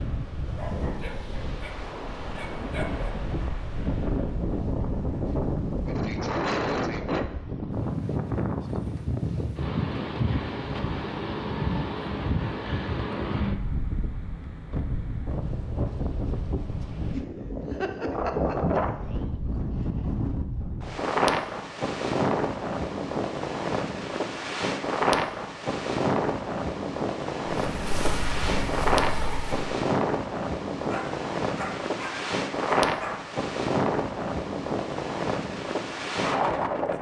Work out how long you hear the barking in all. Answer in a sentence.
The barking can be heard for 5 seconds in total.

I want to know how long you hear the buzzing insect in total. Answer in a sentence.
The buzzing insect can be heard for 2 seconds in total.